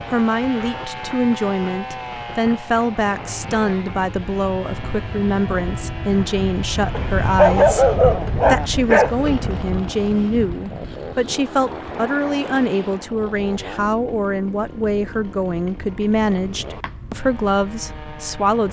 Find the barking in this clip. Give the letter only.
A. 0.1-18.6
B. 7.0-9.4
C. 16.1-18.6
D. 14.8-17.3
B.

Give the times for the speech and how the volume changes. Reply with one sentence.
The speech can be heard from 0.1 to 18.6 s, at a steady volume.